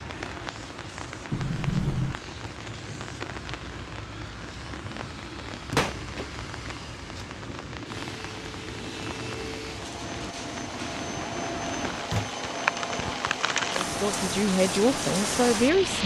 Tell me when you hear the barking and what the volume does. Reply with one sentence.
You can't hear the barking here.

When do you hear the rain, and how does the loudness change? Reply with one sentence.
You can hear the rain from 0.0 to 16.0 s, getting louder.